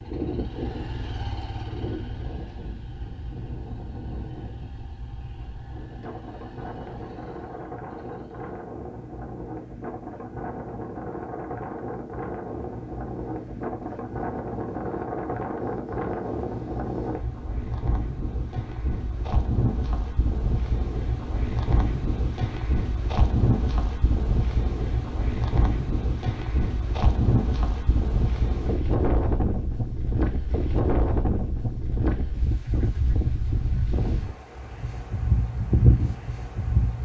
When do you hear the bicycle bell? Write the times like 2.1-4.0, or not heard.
not heard.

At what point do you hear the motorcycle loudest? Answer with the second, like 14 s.
1 s.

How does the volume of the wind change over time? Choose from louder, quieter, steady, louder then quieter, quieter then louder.
louder.